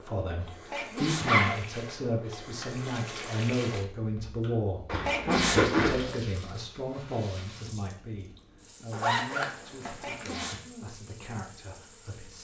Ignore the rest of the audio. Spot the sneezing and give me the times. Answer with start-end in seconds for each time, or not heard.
0.7-1.4, 5.0-5.8, 10.0-10.9.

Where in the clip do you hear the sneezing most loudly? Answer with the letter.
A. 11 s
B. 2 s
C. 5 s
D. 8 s
C.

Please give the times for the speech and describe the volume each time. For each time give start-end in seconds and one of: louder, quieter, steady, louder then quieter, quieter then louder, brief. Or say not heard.
0.0-12.3 quieter.